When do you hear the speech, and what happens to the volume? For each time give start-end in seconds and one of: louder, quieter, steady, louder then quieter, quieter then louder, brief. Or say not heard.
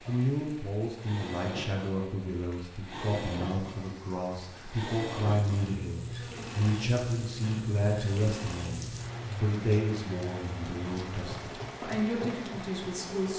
0.1-13.3 steady.